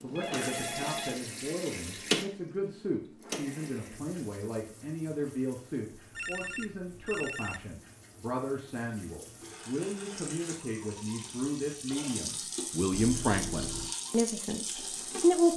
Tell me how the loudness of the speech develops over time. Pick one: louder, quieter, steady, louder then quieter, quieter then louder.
louder.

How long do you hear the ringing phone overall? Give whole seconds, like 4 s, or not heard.
4 s.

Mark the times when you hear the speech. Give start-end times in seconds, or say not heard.
0.0-15.5.